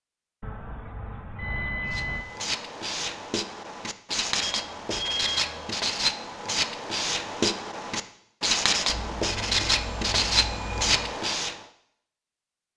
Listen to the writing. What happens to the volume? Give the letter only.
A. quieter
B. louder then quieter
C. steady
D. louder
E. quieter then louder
D.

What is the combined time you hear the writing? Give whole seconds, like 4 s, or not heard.
10 s.